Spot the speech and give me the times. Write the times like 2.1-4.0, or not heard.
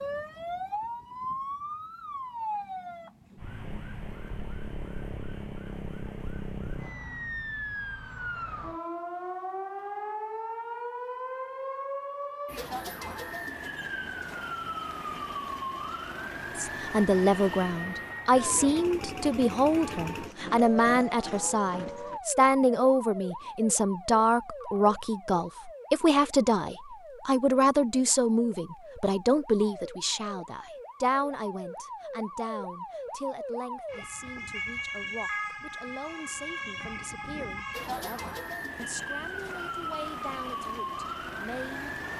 16.6-42.0.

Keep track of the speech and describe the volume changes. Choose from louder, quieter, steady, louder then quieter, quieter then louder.
quieter.